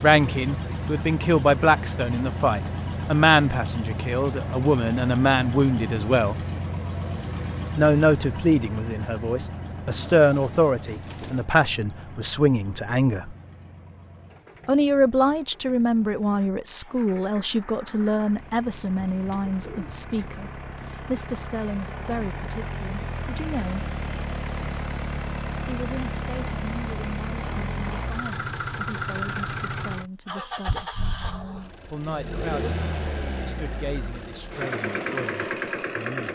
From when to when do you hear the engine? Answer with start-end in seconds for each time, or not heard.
0.0-36.2.